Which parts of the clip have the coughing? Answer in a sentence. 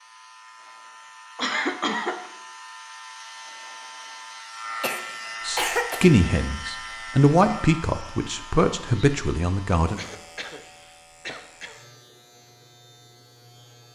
The coughing can be heard from 1.4 to 2.3 s, from 4.8 to 6.1 s and from 9.9 to 11.8 s.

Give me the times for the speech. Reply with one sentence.
You can hear the speech from 5.5 to 10.0 s.